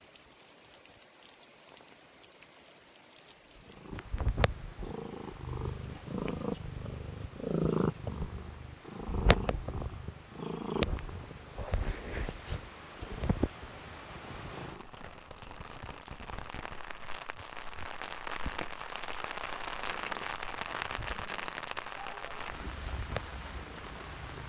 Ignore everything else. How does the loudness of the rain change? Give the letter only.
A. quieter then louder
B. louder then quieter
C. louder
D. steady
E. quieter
C.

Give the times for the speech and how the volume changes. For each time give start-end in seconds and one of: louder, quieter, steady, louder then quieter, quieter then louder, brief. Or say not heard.
not heard.